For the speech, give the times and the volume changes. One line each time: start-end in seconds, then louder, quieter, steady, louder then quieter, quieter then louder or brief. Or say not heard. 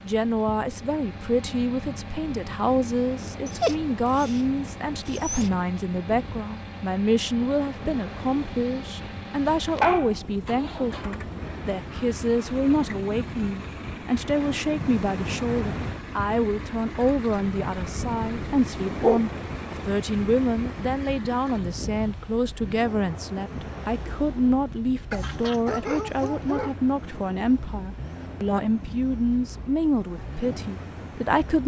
0.0-31.6 steady.